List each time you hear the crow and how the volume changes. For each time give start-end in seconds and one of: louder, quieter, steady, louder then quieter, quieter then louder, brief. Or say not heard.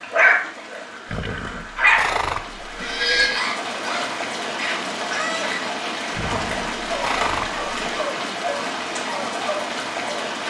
not heard.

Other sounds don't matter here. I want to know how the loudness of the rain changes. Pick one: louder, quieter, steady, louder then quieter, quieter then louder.
louder.